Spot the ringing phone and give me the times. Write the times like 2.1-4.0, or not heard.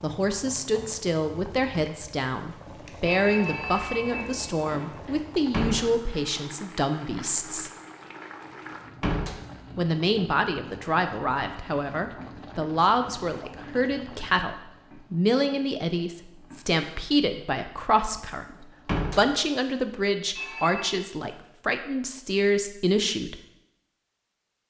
3.0-5.2, 20.4-21.0.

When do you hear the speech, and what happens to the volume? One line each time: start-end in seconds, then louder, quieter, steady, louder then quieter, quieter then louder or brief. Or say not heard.
0.0-7.7 steady
9.8-23.4 steady.